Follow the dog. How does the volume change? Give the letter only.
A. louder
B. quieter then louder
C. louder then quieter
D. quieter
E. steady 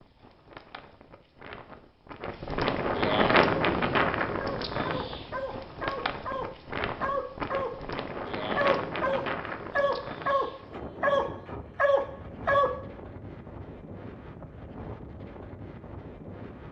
A.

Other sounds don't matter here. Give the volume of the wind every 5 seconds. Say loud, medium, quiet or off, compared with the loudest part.
loud, medium, quiet, quiet.